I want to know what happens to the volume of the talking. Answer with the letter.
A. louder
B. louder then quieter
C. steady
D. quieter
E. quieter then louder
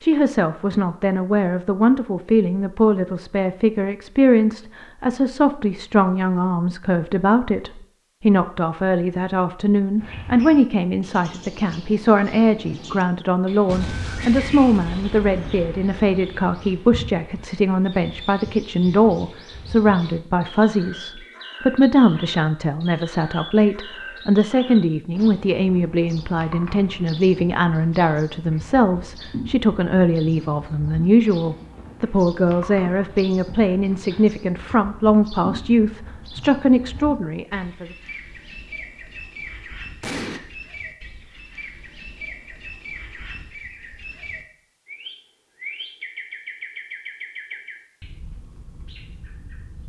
C.